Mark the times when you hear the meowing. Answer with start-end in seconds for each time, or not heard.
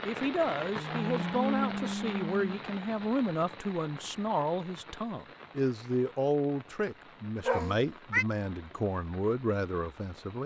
0.8-2.6, 7.5-8.2.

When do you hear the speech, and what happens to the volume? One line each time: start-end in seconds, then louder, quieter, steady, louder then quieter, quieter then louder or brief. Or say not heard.
0.0-10.4 steady.